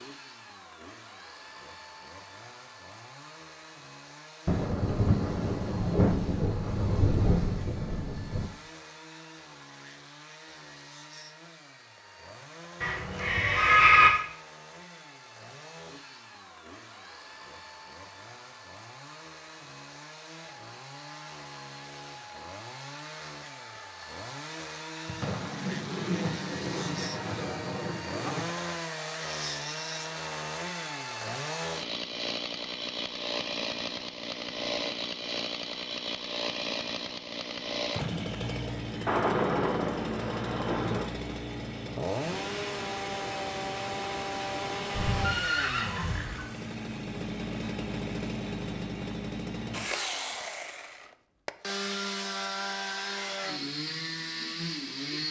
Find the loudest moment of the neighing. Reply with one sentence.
The loudest moment of the neighing is at 14 seconds.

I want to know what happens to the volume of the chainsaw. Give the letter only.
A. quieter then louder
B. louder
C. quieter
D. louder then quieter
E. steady
B.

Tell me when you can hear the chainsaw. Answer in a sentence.
The chainsaw can be heard from 0.0 to 55.2 s.